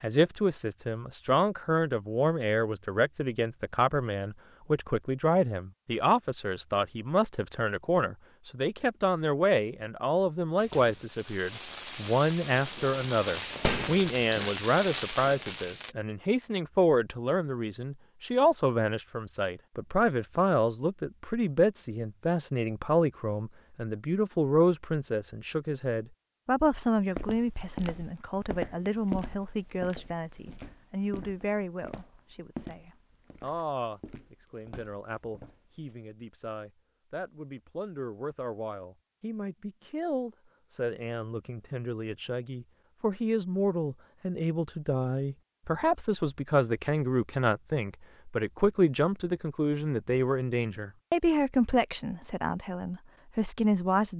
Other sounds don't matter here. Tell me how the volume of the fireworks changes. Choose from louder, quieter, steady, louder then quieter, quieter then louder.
louder.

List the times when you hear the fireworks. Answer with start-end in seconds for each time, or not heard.
10.6-15.9.